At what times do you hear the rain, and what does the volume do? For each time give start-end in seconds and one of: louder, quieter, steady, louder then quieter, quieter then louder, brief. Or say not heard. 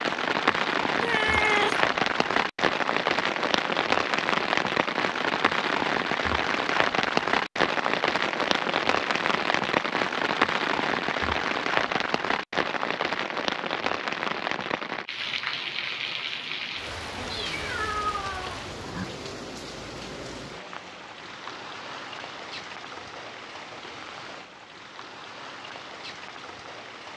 0.0-27.1 quieter.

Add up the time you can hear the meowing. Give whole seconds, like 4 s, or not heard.
3 s.